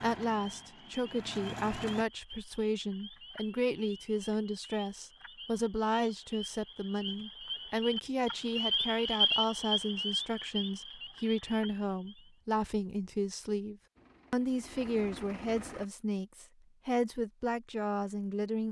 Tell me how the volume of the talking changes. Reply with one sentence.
The volume of the talking stays about the same.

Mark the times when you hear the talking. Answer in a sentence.
You can hear the talking from 0.0 to 18.6 s.